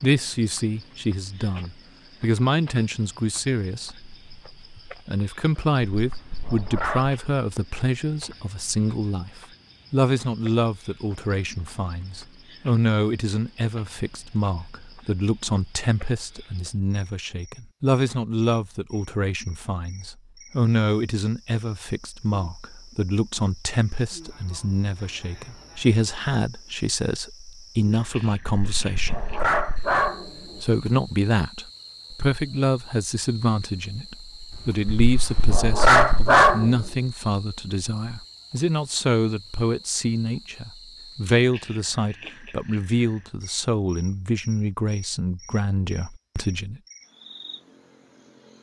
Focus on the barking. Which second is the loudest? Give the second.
36 s.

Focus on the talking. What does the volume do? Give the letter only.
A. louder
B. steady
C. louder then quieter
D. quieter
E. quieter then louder
B.